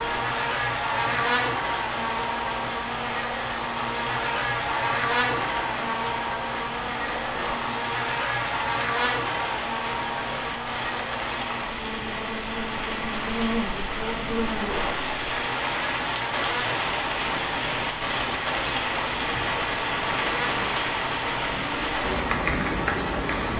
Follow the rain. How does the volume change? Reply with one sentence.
The loudness of the rain goes up.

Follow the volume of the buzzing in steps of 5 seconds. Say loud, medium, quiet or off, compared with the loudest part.
loud, loud, medium, medium, medium.